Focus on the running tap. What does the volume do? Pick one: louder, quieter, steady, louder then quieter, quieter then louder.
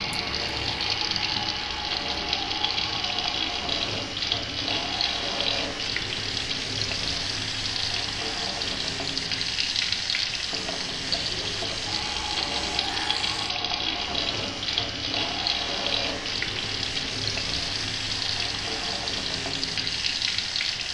steady.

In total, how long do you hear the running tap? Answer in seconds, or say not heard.
21 s.